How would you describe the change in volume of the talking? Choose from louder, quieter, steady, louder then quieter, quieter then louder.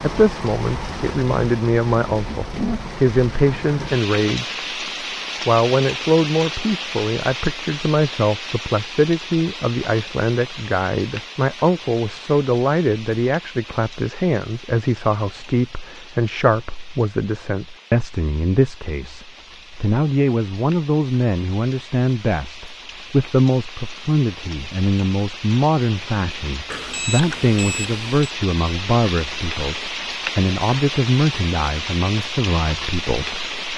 steady.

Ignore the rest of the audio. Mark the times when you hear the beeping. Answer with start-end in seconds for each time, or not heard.
26.7-28.2.